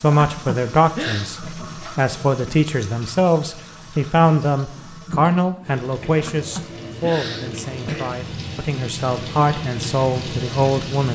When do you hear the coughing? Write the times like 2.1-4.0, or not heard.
0.1-1.3, 6.2-8.2.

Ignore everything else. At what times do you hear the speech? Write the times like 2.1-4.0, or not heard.
0.0-11.0.